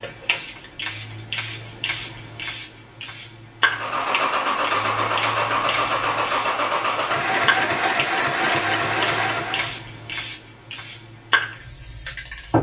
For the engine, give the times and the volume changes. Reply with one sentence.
The engine can be heard from 3.6 to 9.8 s, at a steady volume.